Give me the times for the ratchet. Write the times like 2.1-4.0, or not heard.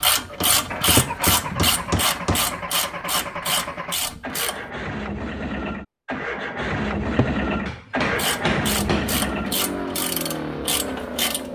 0.0-4.7, 8.1-11.5.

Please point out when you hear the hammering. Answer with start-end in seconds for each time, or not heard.
0.3-2.5, 7.7-9.2.